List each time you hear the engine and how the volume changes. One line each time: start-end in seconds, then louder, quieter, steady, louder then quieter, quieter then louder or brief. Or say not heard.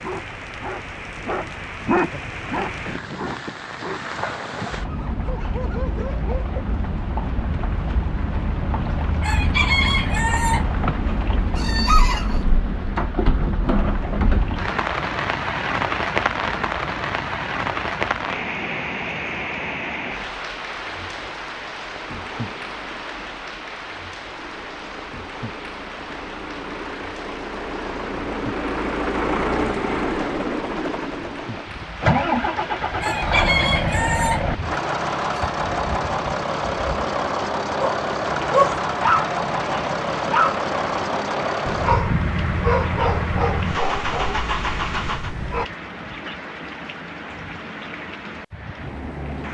21.9-45.4 louder.